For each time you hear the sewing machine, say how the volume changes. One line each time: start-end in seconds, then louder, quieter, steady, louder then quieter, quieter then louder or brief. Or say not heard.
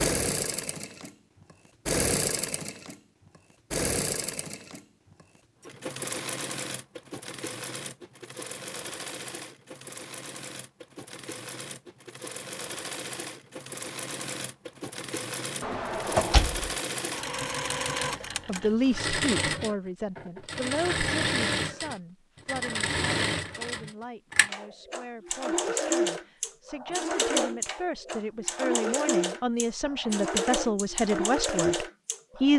0.0-32.5 quieter then louder.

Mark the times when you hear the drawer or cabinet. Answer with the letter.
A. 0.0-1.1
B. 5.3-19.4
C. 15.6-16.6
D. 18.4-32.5
C.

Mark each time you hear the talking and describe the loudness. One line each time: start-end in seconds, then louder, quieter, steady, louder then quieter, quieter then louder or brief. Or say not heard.
18.4-32.5 quieter then louder.